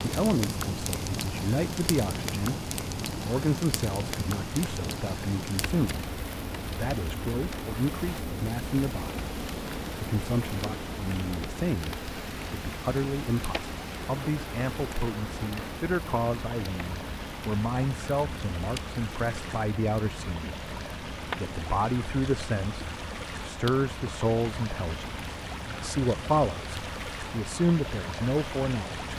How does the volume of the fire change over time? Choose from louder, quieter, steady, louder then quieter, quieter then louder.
quieter.